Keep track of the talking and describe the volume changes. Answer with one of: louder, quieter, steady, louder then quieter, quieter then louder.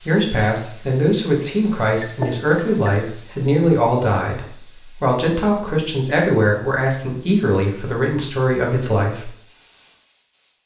steady.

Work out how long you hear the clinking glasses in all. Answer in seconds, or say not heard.
2 s.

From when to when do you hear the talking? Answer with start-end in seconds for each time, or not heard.
0.1-9.3.